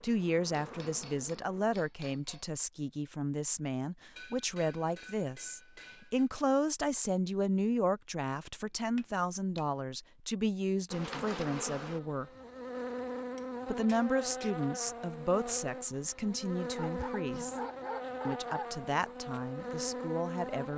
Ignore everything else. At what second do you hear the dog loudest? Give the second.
18 s.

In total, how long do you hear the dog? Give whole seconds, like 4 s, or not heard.
2 s.